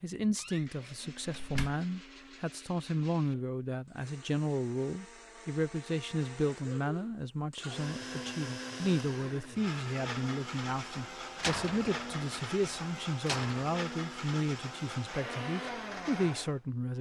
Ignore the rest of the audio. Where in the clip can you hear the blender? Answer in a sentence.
The blender can be heard from 0.2 to 16.7 s.